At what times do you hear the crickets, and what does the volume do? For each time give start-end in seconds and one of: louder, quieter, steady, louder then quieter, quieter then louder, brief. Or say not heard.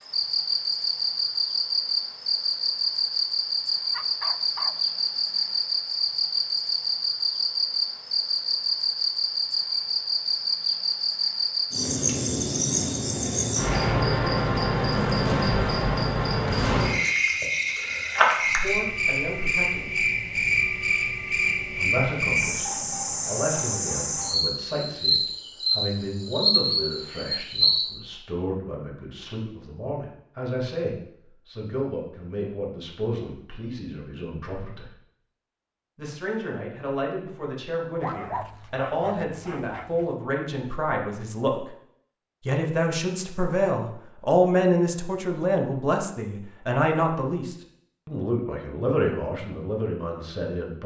0.0-27.9 steady.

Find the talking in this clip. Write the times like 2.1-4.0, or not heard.
18.4-20.1, 21.8-35.0, 36.0-41.6, 42.5-50.8.